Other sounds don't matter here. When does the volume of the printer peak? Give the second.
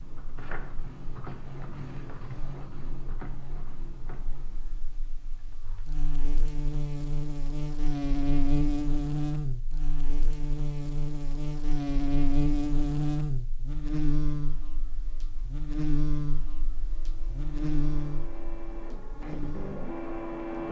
20 s.